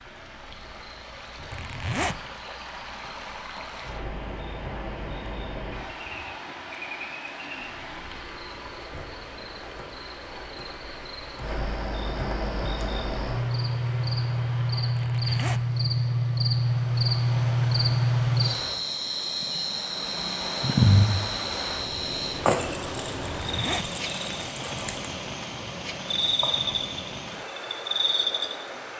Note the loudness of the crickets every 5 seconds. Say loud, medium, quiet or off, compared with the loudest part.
quiet, quiet, medium, loud, loud, medium.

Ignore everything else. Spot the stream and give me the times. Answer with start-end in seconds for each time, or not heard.
0.0-28.9.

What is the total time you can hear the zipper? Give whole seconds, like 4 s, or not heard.
2 s.